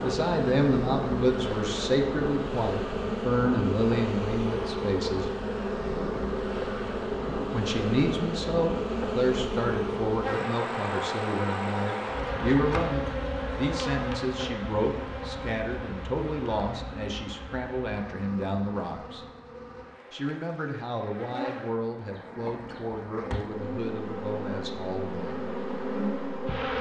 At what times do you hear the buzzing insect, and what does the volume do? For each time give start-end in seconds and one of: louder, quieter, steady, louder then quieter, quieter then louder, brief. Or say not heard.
0.0-26.7 quieter then louder.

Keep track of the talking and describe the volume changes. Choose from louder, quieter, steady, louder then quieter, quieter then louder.
quieter.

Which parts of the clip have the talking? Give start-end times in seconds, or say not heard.
0.0-5.3, 7.5-19.2, 20.1-25.4.